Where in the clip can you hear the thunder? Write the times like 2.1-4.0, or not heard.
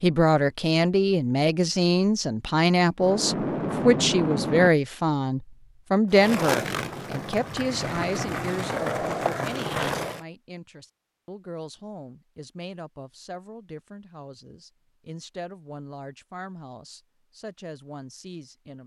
3.0-4.7.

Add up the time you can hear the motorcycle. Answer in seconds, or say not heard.
not heard.